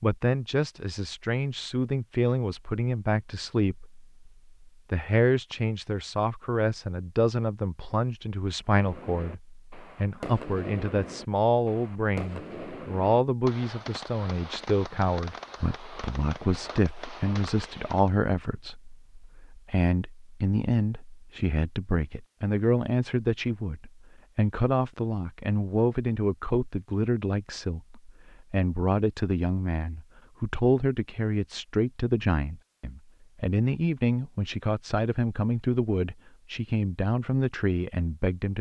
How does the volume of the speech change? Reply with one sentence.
The volume of the speech stays about the same.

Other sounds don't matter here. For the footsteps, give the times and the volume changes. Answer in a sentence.
The footsteps can't be heard in this clip.